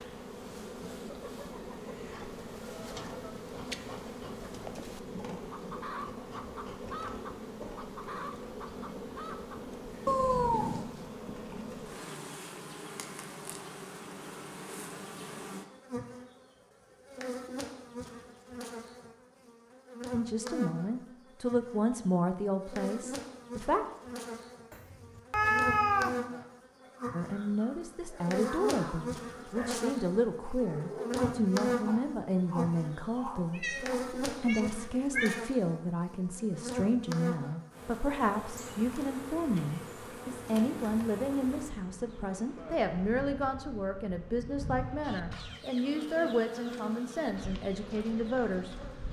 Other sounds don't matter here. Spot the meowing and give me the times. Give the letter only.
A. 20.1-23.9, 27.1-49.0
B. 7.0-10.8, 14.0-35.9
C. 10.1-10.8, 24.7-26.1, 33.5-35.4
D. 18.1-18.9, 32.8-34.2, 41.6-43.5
C.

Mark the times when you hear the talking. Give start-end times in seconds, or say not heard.
20.1-23.9, 27.1-49.0.